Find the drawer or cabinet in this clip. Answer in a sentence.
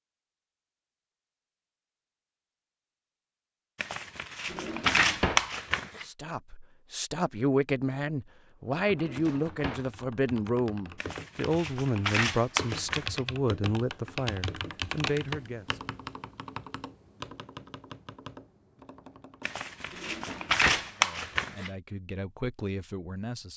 You can hear the drawer or cabinet from 4.5 to 5.5 s, from 8.9 to 9.9 s and from 19.9 to 20.9 s.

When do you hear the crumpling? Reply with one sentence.
You can hear the crumpling from 3.8 to 6.0 s, from 11.0 to 13.2 s and from 19.4 to 21.7 s.